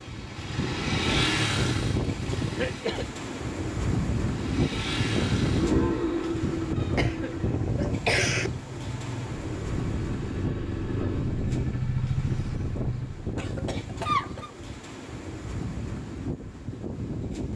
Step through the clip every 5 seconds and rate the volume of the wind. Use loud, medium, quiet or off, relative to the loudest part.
loud, loud, medium, medium.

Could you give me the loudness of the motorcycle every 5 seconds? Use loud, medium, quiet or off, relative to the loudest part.
loud, loud, loud, off.